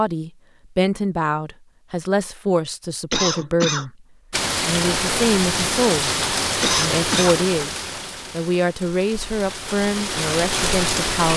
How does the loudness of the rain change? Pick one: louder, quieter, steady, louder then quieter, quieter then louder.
quieter then louder.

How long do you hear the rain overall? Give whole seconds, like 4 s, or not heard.
7 s.